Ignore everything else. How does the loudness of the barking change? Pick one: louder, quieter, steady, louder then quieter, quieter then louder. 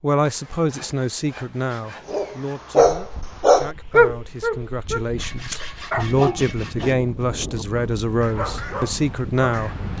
quieter.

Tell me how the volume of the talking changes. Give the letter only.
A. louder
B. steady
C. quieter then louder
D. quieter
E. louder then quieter
C.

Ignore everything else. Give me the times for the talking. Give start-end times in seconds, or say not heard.
0.0-9.8.